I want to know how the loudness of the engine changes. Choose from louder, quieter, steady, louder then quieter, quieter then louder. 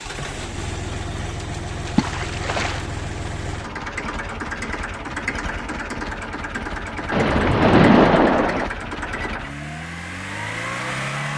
steady.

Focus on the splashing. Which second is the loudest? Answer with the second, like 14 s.
8 s.